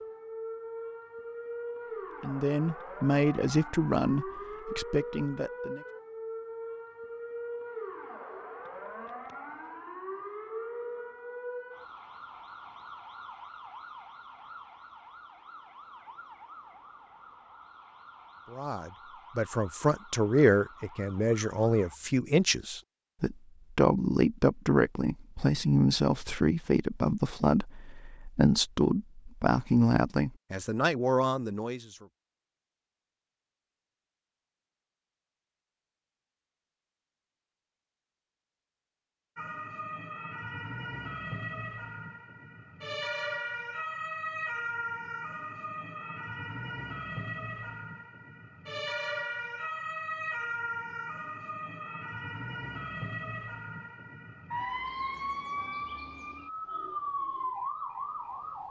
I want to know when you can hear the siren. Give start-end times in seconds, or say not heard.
0.0-22.0, 39.4-58.6.